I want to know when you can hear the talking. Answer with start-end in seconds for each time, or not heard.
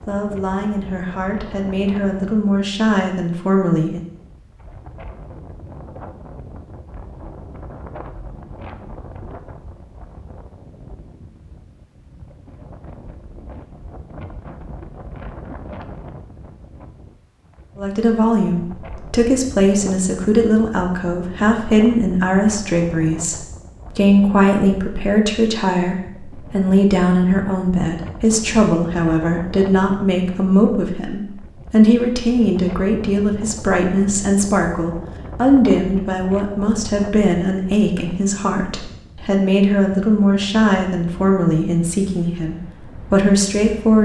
0.1-4.0, 17.8-44.0.